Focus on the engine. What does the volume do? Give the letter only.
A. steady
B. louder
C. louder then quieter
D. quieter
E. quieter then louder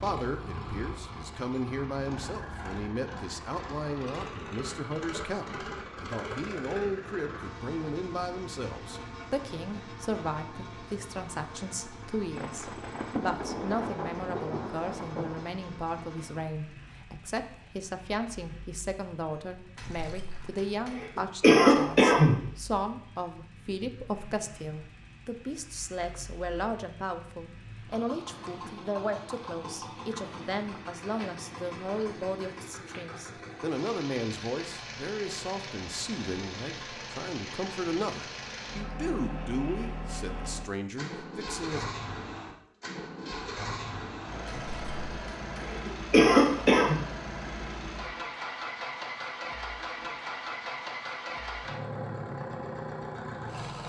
E.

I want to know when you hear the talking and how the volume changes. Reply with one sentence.
You can hear the talking from 0.0 to 41.9 s, at a steady volume.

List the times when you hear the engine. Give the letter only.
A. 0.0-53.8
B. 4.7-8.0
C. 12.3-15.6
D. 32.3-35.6
A.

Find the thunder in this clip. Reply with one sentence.
The thunder can be heard from 12.3 to 15.6 s.